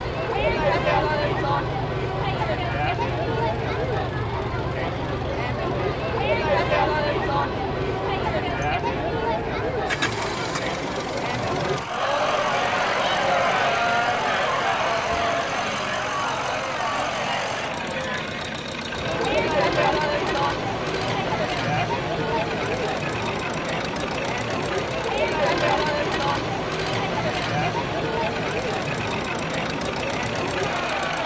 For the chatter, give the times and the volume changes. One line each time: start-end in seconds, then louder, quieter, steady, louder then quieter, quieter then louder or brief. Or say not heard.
0.0-31.2 steady.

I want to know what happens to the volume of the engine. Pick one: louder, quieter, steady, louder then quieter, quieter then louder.
steady.